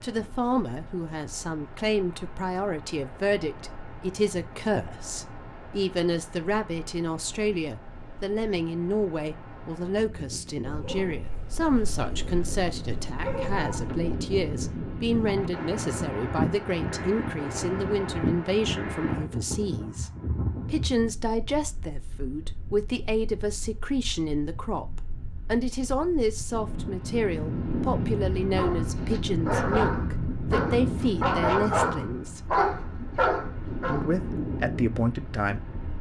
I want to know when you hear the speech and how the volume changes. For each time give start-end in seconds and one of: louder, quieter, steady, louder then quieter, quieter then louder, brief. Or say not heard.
0.0-32.4 steady
33.9-35.8 brief.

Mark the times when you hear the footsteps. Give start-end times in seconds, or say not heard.
not heard.